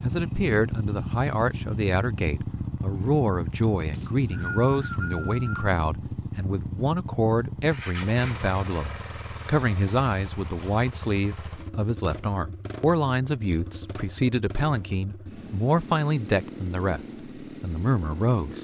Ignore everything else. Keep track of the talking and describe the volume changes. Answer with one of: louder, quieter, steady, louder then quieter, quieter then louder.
steady.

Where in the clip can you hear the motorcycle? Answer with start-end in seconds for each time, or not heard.
0.0-18.5.